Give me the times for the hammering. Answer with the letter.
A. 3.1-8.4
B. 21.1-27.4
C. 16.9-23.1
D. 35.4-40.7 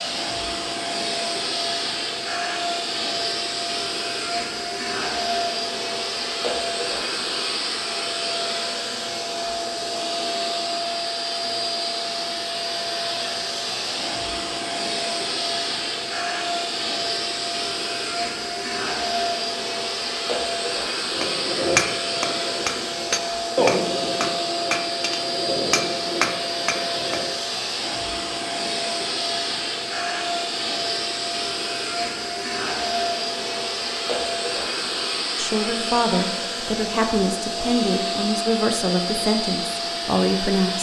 B.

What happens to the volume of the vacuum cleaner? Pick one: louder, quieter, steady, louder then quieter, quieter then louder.
steady.